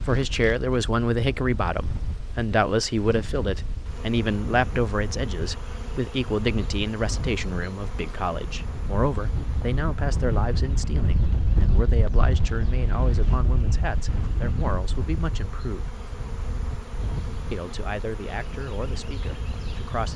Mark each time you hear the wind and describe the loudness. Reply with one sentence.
You can hear the wind from 0.0 to 20.1 s, getting louder then quieter.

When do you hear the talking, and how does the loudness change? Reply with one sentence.
The talking can be heard from 0.1 to 15.9 s, getting quieter; and briefly from 17.5 to 20.1 s.